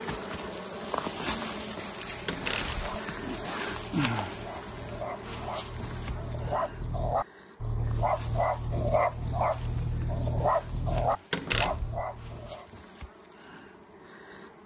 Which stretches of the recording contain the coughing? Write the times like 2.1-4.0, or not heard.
not heard.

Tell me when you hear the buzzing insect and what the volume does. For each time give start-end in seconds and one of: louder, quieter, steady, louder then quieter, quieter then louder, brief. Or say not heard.
0.0-14.6 quieter.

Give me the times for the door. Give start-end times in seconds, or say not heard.
2.2-2.8, 11.3-12.0.